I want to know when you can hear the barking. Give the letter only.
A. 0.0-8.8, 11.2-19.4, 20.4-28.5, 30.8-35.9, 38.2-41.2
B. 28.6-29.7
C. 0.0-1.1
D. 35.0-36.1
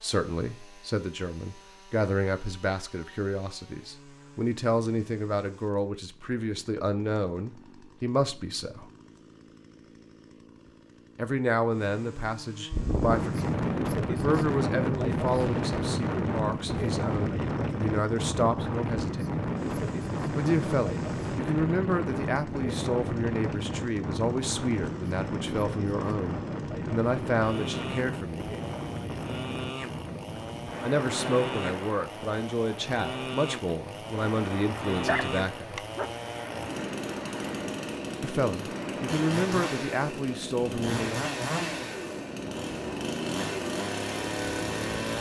D.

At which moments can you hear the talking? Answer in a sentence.
You can hear the talking from 0.0 to 8.8 s, from 11.2 to 19.4 s, from 20.4 to 28.5 s, from 30.8 to 35.9 s and from 38.2 to 41.2 s.